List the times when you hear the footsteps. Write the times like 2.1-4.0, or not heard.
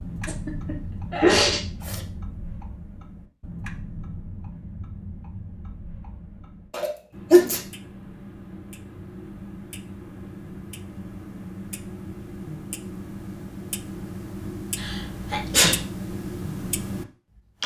not heard.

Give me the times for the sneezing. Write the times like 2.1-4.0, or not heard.
0.0-2.0, 6.7-7.6, 14.8-15.8.